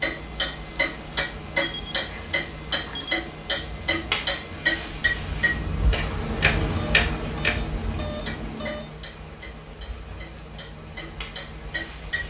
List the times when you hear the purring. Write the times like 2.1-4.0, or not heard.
not heard.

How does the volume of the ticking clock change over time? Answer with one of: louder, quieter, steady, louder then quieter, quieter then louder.
quieter.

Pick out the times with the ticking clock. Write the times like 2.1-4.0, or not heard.
0.0-12.2.